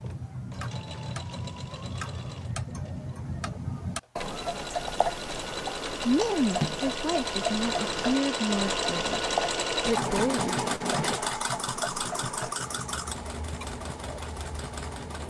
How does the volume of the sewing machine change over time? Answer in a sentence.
The volume of the sewing machine goes up, then down.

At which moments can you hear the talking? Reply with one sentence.
The talking can be heard from 6.0 to 10.5 s.